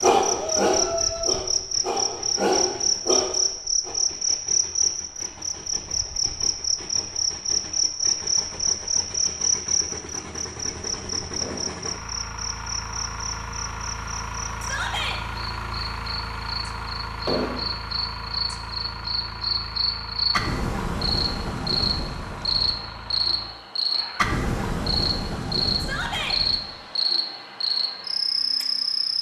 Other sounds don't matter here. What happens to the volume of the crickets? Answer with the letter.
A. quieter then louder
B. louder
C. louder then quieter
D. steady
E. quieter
A.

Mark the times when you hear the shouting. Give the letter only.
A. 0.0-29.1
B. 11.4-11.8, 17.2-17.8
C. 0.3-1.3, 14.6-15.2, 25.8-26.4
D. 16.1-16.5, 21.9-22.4
C.